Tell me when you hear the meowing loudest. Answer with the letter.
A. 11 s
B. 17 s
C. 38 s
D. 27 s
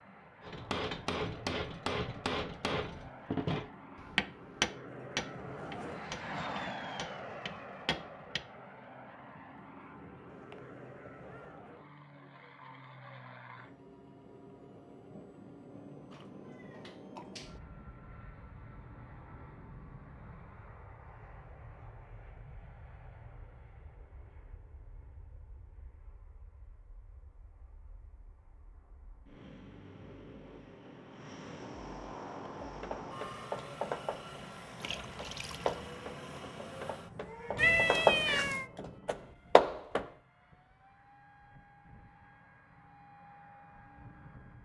C.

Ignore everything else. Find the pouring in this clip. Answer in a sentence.
The pouring can be heard from 34.8 to 35.9 s.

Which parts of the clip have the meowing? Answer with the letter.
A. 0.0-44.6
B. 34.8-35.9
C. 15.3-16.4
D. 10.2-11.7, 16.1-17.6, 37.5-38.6
D.